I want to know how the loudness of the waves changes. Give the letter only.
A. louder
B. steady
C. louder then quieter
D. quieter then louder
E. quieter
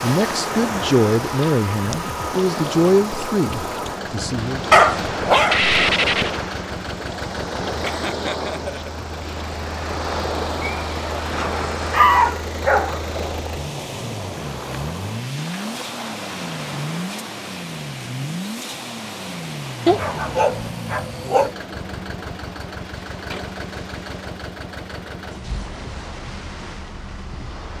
E.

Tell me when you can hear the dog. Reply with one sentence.
You can hear the dog from 4.7 to 6.3 s, from 10.6 to 13.0 s and from 19.9 to 21.5 s.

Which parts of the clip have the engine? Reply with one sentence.
You can hear the engine from 0.0 to 27.7 s.